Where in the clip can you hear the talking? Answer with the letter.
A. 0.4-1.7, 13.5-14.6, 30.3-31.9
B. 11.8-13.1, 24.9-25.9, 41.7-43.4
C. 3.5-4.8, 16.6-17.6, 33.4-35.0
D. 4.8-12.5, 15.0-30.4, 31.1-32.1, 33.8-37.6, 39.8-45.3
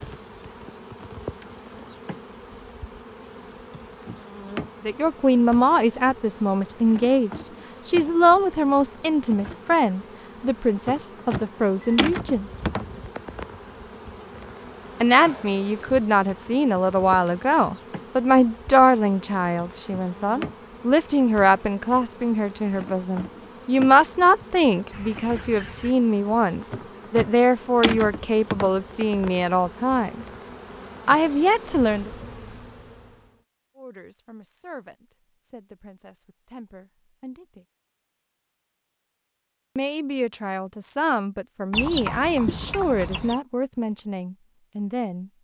D.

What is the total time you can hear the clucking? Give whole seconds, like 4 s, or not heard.
4 s.